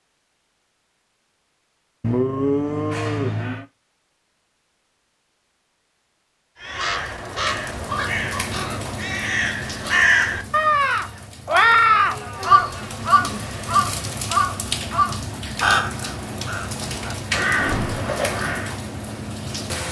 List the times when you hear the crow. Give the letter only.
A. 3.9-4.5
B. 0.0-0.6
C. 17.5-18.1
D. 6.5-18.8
D.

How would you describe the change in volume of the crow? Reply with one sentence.
The volume of the crow goes up, then down.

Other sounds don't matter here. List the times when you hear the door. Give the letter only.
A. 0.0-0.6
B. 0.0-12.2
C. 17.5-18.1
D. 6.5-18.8
C.